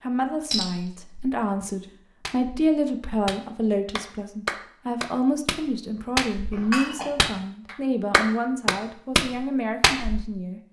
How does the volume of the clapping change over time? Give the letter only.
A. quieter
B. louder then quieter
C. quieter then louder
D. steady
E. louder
E.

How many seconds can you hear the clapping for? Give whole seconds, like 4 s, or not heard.
8 s.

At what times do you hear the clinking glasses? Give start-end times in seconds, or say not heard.
0.5-1.1, 6.5-7.3.